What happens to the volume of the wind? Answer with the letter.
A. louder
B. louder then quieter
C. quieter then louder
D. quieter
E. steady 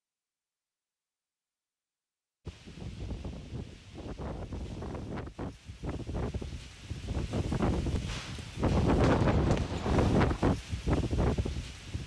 A.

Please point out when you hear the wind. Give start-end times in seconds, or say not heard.
2.5-12.0.